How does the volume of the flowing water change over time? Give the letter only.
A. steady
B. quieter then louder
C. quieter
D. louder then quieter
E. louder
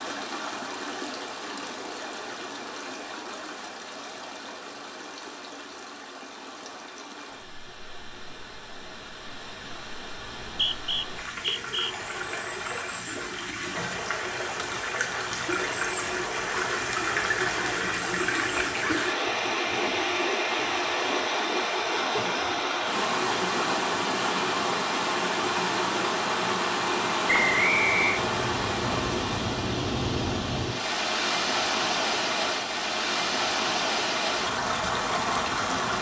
E.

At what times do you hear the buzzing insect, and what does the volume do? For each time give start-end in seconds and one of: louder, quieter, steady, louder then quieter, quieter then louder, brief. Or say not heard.
not heard.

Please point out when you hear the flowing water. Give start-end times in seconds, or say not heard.
0.0-35.9.